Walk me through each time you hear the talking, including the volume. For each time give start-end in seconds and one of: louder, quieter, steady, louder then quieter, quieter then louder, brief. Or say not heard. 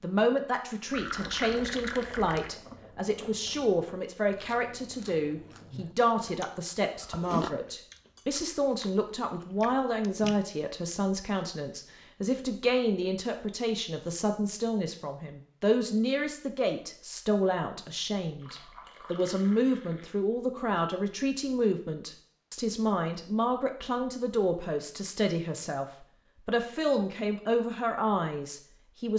0.0-29.1 steady.